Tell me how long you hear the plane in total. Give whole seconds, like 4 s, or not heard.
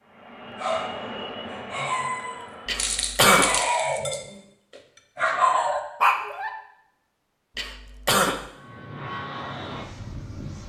5 s.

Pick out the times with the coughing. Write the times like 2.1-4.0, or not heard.
2.6-3.6, 7.5-8.4.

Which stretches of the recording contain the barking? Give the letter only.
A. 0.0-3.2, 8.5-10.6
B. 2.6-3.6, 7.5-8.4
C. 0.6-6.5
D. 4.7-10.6
C.